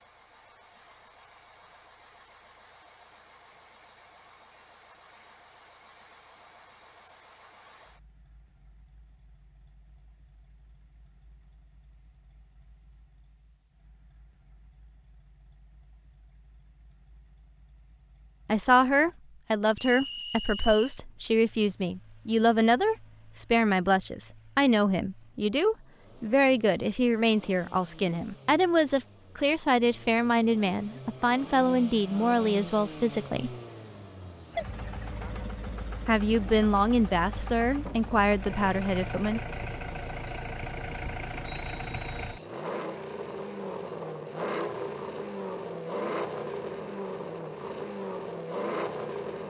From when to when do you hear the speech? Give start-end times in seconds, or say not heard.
18.4-33.5, 36.0-39.4.